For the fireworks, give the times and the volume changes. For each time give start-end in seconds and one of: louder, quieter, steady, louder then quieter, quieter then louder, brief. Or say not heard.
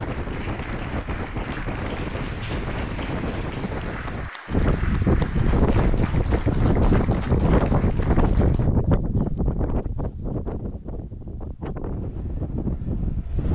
not heard.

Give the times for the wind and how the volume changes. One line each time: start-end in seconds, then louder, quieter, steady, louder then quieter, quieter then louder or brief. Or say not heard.
0.0-13.5 louder then quieter.